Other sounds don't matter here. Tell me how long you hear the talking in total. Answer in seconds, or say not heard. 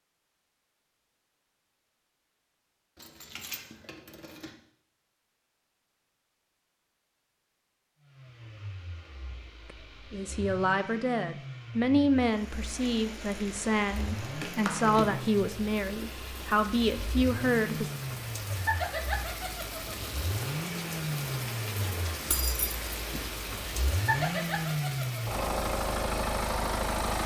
8 s.